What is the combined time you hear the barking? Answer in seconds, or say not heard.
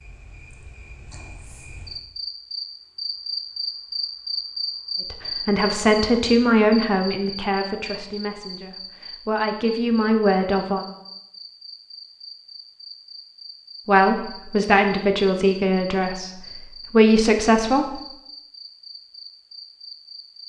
not heard.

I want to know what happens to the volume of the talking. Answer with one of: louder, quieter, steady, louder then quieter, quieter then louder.
quieter then louder.